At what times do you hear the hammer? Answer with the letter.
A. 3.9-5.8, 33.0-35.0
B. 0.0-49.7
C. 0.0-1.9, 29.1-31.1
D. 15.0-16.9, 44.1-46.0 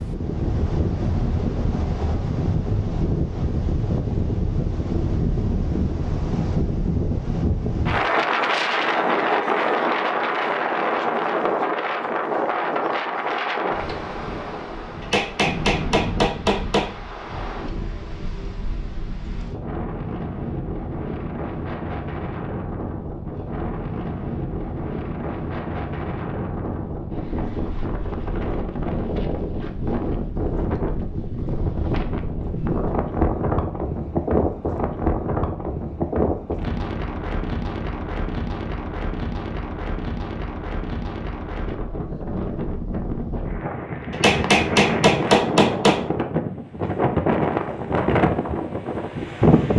D.